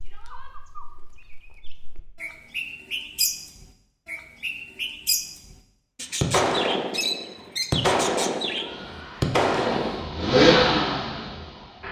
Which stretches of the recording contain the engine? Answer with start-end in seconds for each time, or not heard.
8.7-11.8.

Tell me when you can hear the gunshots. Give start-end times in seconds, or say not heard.
6.2-10.1.